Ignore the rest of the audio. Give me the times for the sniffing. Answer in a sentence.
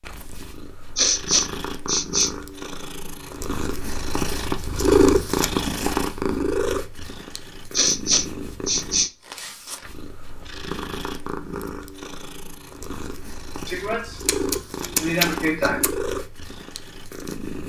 You can hear the sniffing from 0.9 to 2.3 s, from 7.7 to 9.1 s and from 13.7 to 15.9 s.